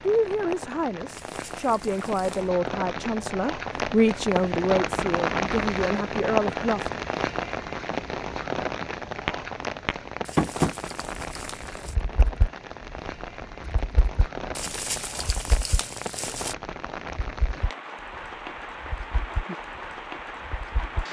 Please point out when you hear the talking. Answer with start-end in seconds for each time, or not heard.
0.0-7.0.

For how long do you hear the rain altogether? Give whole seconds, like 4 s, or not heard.
21 s.